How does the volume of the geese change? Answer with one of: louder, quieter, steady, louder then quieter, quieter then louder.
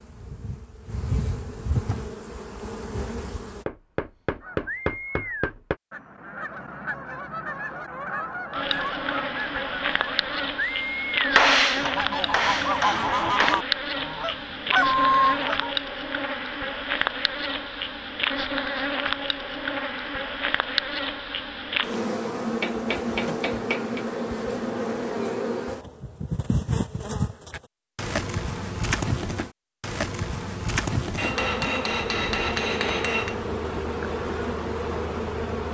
louder.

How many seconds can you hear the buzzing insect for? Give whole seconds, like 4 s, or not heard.
31 s.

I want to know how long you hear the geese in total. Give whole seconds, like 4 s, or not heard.
11 s.